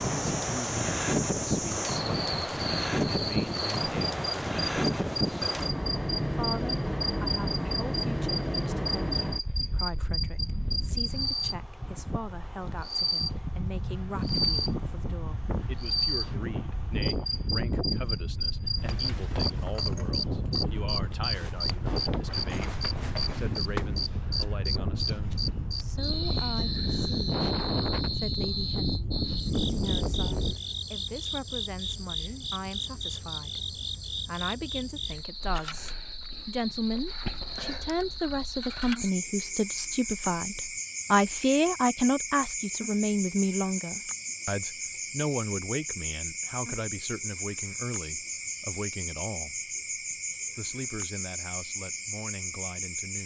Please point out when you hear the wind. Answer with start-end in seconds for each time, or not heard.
0.0-30.6.